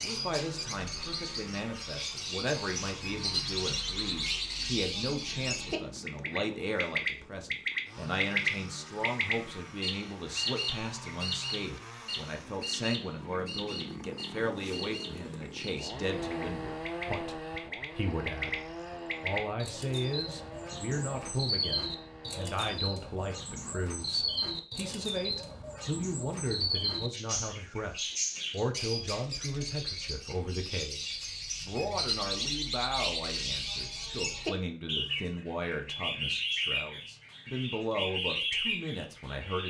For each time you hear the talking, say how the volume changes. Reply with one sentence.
The talking can be heard from 0.0 to 18.6 s, at a steady volume; and from 19.2 to 39.6 s, at a steady volume.